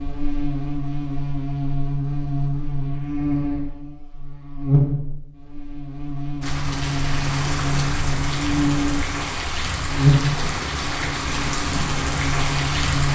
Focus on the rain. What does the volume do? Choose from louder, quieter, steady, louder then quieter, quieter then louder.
steady.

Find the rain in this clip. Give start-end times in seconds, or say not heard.
6.4-13.0.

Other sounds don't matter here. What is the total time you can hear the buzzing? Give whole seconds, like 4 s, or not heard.
13 s.